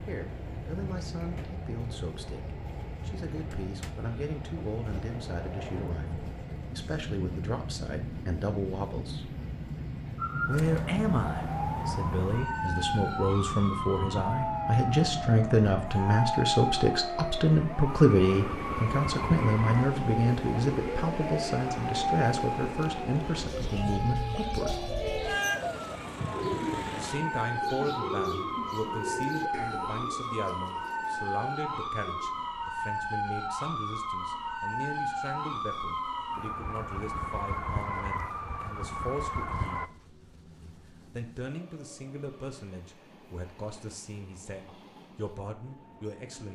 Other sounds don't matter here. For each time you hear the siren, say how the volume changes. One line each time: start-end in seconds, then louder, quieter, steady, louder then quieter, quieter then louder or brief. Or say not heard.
10.2-39.9 steady.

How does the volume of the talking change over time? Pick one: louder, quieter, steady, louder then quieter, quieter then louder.
louder then quieter.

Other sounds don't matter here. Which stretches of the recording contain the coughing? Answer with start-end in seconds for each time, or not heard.
not heard.